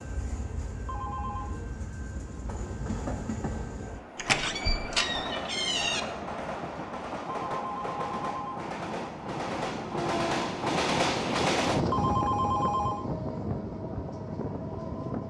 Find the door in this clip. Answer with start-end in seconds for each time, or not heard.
4.2-6.0.